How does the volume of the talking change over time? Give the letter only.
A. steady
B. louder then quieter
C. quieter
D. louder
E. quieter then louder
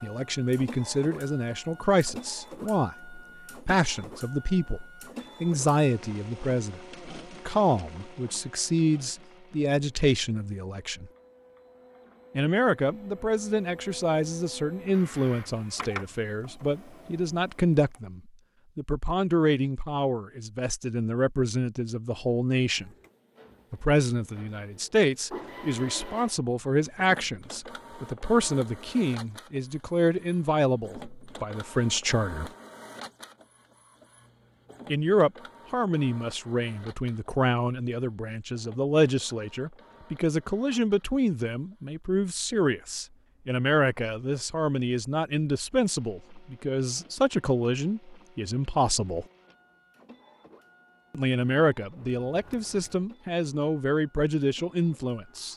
A.